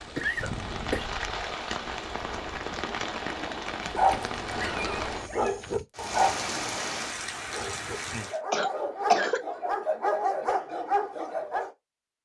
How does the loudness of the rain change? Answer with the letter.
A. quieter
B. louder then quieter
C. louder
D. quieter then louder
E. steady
E.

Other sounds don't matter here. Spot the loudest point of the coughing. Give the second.
9 s.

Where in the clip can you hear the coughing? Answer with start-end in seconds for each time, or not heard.
0.1-1.1, 8.5-9.4.